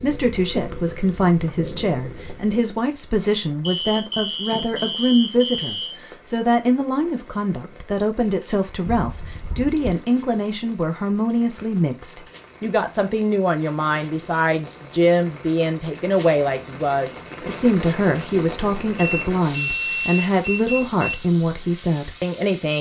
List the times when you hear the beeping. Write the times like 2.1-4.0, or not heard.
3.6-6.0, 8.8-10.1, 18.9-21.3.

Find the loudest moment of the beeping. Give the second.
20 s.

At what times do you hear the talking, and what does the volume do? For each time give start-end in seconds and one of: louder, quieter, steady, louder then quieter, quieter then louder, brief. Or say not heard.
0.0-22.7 steady.